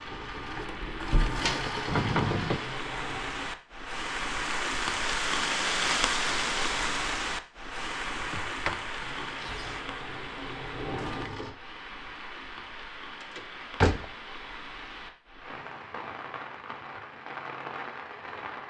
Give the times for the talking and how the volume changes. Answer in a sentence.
You can't hear the talking here.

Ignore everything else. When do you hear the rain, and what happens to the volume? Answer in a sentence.
The rain can be heard from 0.0 to 18.6 s, getting louder then quieter.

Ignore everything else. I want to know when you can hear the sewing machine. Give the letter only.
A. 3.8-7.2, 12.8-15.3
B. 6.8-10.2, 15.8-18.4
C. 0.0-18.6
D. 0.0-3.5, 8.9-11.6
D.